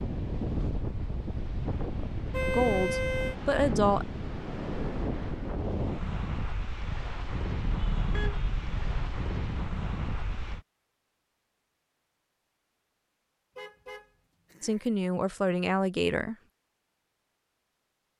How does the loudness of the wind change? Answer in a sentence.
The volume of the wind stays about the same.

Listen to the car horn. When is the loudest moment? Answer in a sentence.
The volume of the car horn peaks at 3 seconds.